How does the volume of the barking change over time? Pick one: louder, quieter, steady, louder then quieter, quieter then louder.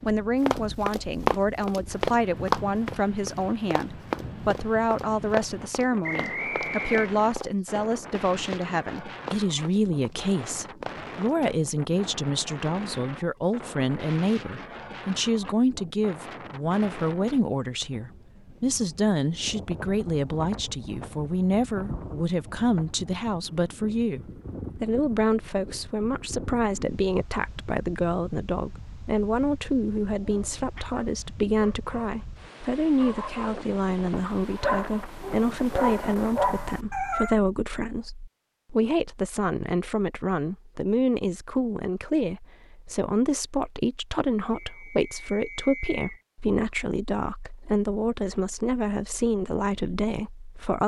louder.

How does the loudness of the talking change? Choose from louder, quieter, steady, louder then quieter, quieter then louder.
steady.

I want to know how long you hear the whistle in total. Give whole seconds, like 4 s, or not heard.
3 s.